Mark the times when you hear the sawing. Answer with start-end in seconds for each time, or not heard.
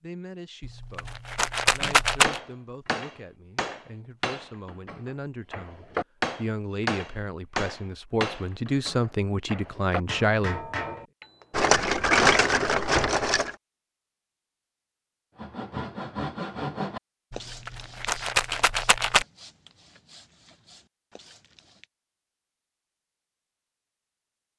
15.3-21.9.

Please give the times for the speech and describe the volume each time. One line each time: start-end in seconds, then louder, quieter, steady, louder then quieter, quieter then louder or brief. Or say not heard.
0.0-10.7 louder.